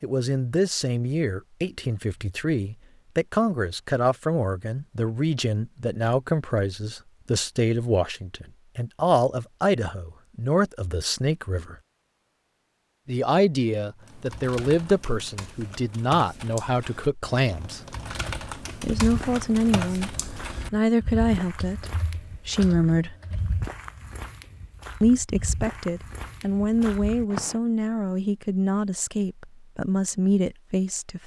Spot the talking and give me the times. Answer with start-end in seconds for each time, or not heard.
0.0-11.8, 13.1-17.8, 18.8-20.1, 20.7-23.1, 25.0-31.2.